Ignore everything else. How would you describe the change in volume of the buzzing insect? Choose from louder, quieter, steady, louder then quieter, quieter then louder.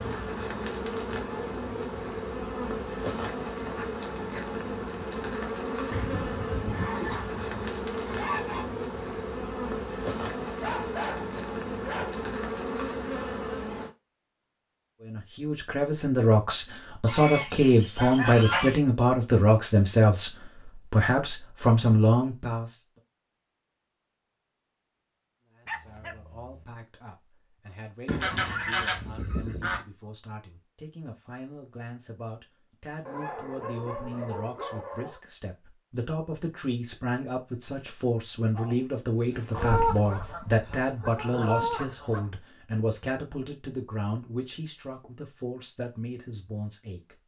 steady.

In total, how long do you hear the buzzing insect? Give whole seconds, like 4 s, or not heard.
14 s.